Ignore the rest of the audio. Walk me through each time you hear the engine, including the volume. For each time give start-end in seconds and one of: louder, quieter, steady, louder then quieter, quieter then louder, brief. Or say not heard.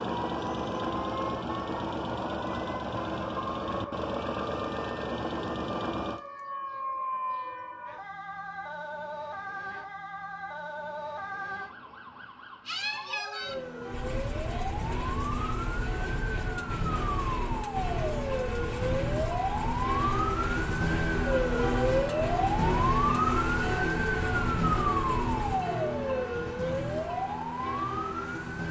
0.0-6.2 steady
13.9-25.6 steady.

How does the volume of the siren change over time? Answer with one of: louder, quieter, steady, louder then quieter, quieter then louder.
louder.